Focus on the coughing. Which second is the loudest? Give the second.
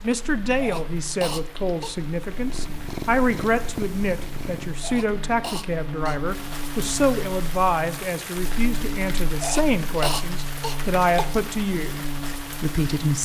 10 s.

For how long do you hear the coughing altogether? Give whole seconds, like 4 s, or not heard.
5 s.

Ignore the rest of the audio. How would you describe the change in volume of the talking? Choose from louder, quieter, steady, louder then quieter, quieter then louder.
steady.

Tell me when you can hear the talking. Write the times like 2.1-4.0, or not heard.
0.0-13.1.